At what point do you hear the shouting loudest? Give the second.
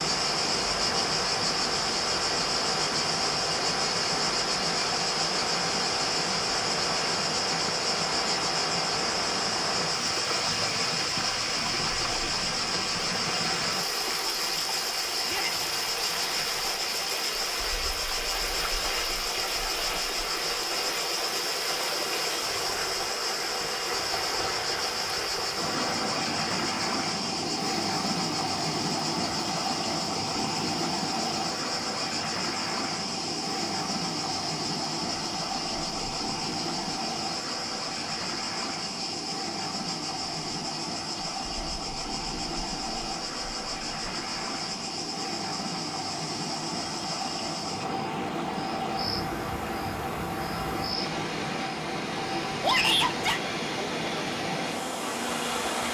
53 s.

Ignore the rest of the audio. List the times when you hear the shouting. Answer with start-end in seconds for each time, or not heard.
15.2-15.7, 52.6-53.4.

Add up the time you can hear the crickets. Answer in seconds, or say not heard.
56 s.